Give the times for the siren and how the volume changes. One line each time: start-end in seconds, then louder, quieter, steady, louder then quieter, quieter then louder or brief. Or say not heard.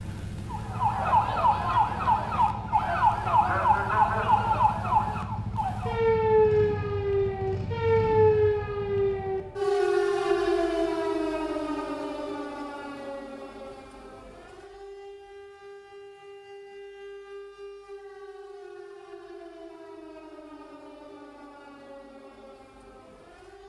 0.0-23.6 quieter.